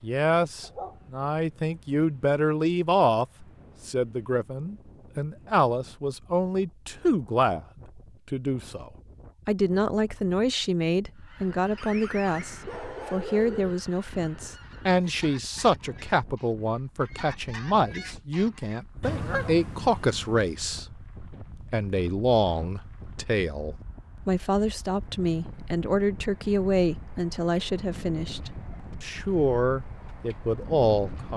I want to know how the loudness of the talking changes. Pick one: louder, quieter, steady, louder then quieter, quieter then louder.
steady.